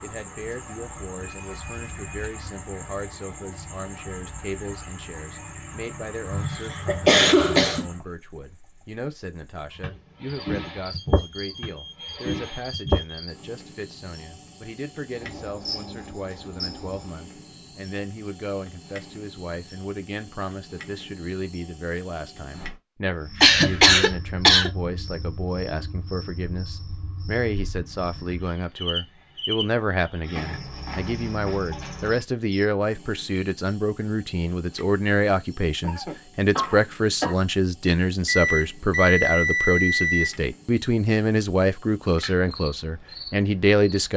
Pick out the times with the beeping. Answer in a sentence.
You can hear the beeping from 10.9 to 13.2 s and from 38.2 to 40.3 s.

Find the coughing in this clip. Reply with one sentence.
The coughing can be heard from 6.3 to 7.8 s, from 23.4 to 24.7 s and from 35.8 to 37.4 s.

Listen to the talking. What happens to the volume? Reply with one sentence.
The volume of the talking goes up.